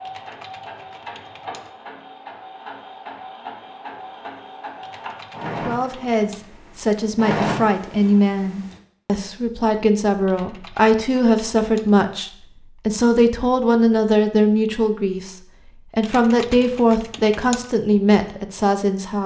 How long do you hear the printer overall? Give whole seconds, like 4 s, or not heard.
9 s.